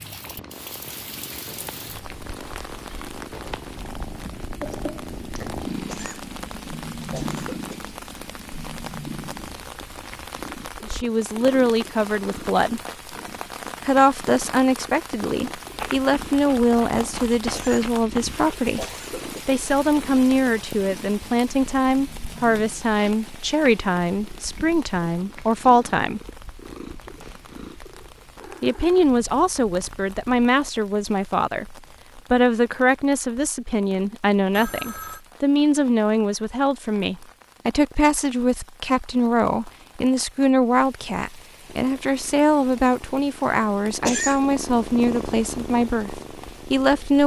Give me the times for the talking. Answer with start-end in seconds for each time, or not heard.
10.8-12.8, 13.8-18.9, 19.4-26.2, 28.6-47.2.